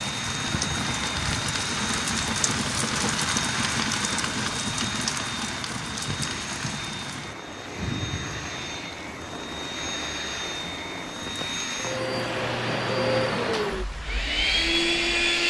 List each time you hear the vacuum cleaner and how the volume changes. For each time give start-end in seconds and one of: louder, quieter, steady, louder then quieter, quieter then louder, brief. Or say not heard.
0.0-15.4 louder.